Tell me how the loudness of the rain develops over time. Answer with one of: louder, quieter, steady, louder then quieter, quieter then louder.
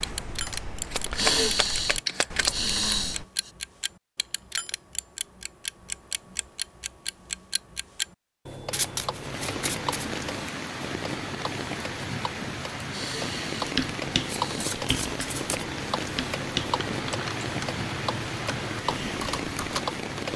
steady.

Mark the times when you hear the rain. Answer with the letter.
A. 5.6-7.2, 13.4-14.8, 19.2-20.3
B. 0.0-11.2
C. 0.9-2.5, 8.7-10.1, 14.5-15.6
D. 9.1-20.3
D.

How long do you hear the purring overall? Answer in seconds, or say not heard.
not heard.